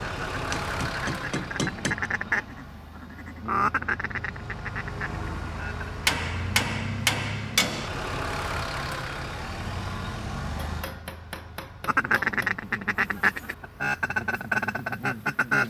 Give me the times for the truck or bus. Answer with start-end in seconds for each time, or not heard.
0.0-15.6.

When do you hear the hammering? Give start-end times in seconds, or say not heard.
0.5-1.9, 6.0-7.9, 10.6-12.5.